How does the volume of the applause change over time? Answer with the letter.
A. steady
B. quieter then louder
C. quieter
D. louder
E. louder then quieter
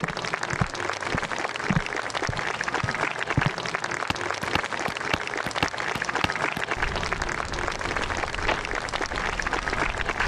A.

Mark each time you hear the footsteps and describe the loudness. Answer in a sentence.
The footsteps can be heard from 0.0 to 10.2 s, getting quieter.